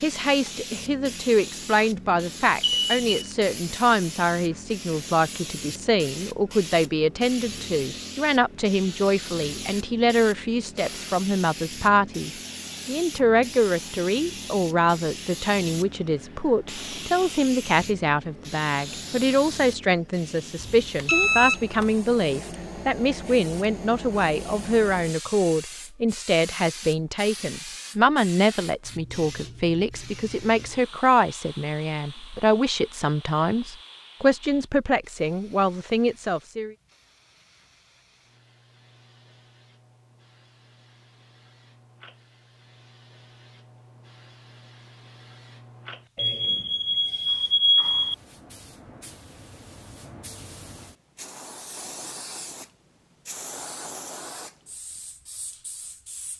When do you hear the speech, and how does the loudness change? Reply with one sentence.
The speech can be heard from 0.0 to 36.8 s, at a steady volume.